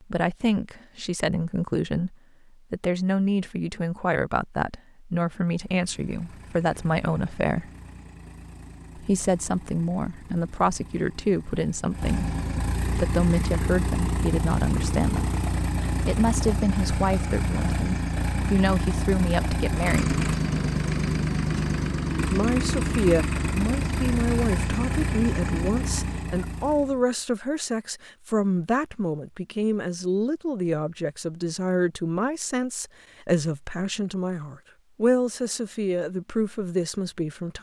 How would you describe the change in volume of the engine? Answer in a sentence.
The volume of the engine goes up.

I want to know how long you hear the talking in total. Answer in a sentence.
You can hear the talking for 33 seconds altogether.